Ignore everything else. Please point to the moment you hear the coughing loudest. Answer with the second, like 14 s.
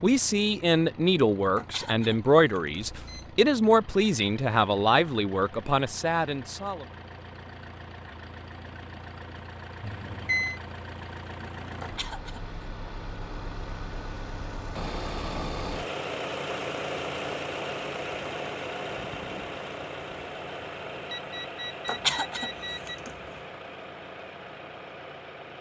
22 s.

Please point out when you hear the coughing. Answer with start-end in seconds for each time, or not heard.
1.6-2.9, 11.8-12.6, 21.9-23.1.